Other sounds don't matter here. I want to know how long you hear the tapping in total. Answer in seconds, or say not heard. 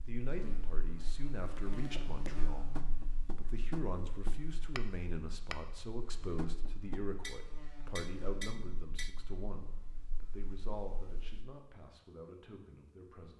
8 s.